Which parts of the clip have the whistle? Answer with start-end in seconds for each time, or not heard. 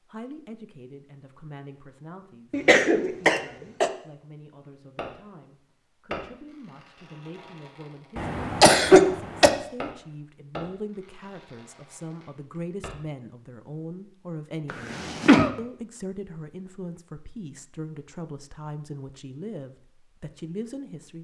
not heard.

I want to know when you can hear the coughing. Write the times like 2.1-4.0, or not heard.
2.5-3.9, 8.2-9.5, 14.7-15.5.